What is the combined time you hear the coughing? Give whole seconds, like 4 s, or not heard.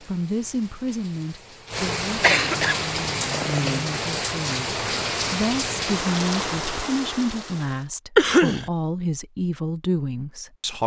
2 s.